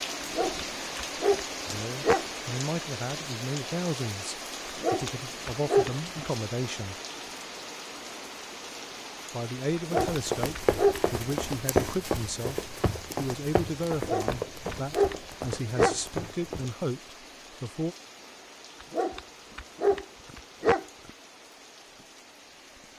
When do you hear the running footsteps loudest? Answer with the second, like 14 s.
12 s.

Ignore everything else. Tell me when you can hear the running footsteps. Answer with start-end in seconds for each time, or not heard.
9.9-16.8.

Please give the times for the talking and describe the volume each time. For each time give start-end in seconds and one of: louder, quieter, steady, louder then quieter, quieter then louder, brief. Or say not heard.
1.6-7.0 steady
9.3-17.9 steady.